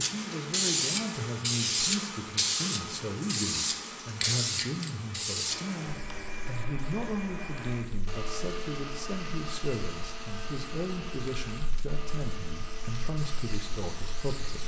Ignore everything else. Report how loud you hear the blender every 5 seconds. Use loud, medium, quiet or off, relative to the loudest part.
off, loud, loud.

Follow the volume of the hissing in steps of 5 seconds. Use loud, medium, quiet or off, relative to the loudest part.
loud, medium, quiet.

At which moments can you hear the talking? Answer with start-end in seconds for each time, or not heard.
0.0-14.6.